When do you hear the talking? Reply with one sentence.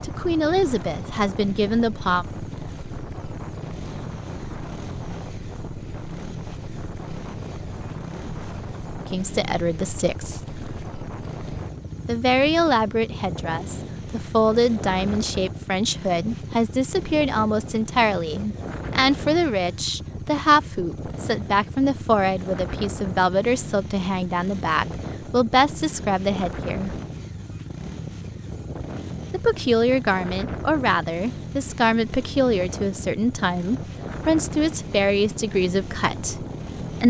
The talking can be heard from 0.0 to 2.2 s, from 9.0 to 10.4 s, from 12.1 to 27.0 s and from 29.3 to 37.0 s.